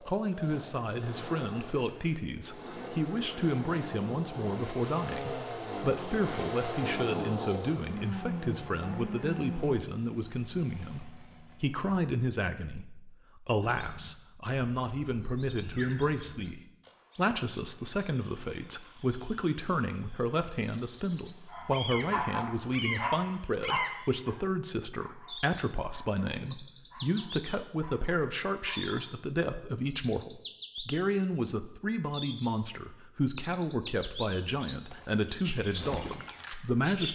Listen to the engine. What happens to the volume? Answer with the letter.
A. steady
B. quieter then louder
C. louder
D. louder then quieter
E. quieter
D.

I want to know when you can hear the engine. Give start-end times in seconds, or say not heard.
0.0-11.9.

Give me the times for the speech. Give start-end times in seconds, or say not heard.
0.0-37.1.